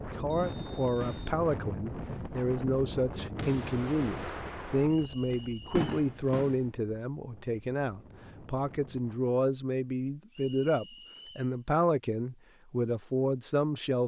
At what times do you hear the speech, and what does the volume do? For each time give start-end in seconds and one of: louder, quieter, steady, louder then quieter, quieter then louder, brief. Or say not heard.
0.1-14.0 steady.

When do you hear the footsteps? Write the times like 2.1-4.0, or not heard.
not heard.